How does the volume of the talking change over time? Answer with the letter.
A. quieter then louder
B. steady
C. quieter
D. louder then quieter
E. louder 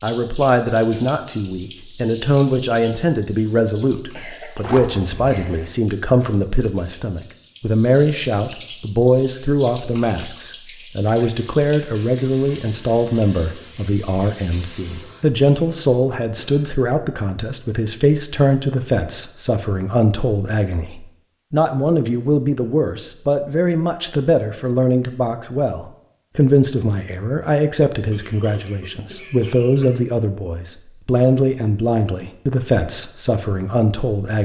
B.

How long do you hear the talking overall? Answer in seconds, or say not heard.
34 s.